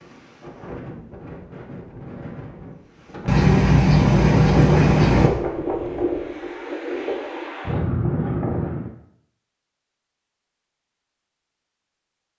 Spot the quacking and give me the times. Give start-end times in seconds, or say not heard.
3.2-5.3.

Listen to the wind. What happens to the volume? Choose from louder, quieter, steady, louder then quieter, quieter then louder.
louder.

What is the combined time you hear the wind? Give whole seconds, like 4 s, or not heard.
9 s.